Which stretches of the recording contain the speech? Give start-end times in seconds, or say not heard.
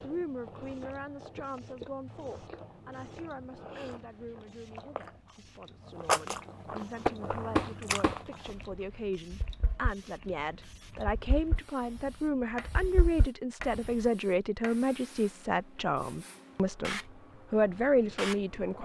0.0-18.8.